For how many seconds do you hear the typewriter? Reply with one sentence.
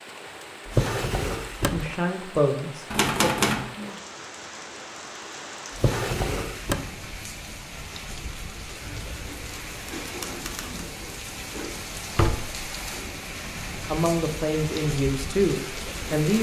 The typewriter can be heard for 3 seconds in total.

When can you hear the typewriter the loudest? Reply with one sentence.
The loudest moment of the typewriter is at 3 seconds.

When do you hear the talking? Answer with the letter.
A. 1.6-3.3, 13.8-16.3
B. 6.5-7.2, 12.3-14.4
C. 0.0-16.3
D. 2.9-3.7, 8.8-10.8
A.